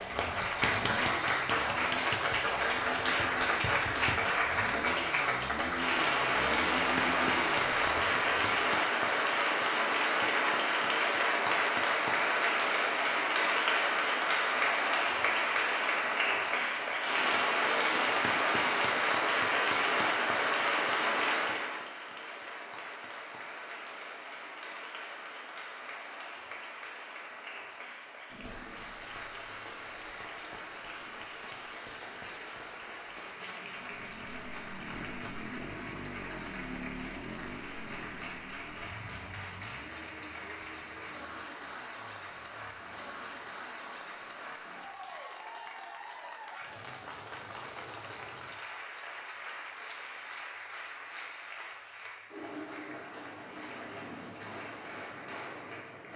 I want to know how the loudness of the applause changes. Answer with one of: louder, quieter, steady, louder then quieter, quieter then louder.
quieter.